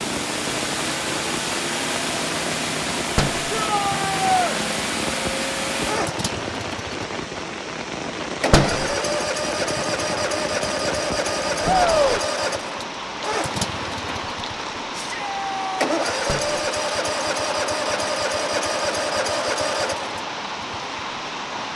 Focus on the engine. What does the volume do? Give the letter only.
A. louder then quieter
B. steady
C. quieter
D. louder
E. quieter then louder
B.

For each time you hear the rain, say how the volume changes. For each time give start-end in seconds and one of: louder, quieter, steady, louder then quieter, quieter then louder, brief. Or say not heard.
0.0-21.7 steady.